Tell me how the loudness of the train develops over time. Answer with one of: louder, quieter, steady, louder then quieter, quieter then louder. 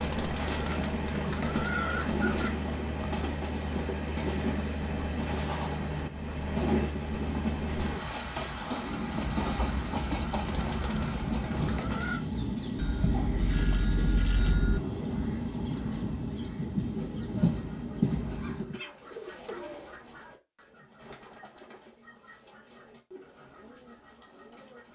steady.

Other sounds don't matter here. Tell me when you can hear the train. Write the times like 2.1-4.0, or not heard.
0.0-18.8.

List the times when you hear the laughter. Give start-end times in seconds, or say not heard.
not heard.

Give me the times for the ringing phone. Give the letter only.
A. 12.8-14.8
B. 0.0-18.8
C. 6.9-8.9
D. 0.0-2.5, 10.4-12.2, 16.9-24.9
A.